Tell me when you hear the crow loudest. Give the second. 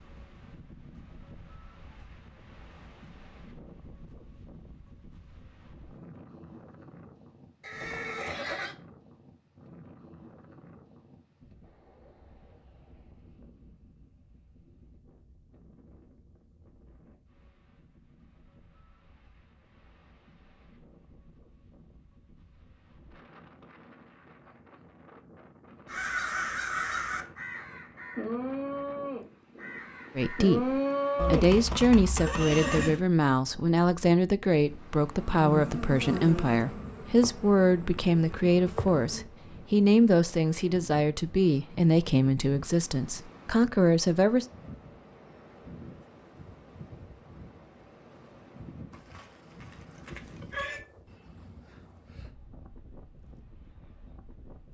31 s.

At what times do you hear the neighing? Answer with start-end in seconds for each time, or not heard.
7.6-8.8, 31.1-33.0, 48.9-50.8.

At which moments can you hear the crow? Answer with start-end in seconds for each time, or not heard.
25.9-31.4.